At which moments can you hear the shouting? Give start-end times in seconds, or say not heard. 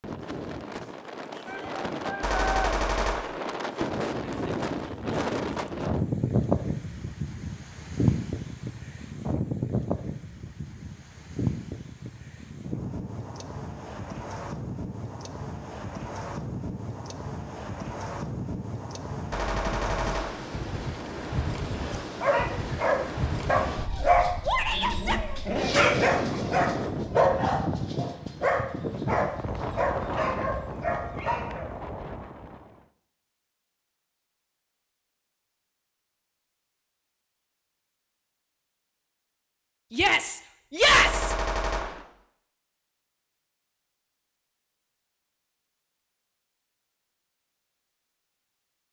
1.4-2.7, 24.4-25.2, 39.9-41.4.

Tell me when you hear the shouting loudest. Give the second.
41 s.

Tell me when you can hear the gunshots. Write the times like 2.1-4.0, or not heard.
2.2-3.4, 19.3-20.4, 40.9-42.0.